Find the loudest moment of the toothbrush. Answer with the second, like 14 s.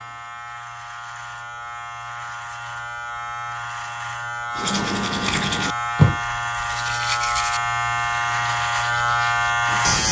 6 s.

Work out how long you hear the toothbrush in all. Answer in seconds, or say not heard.
5 s.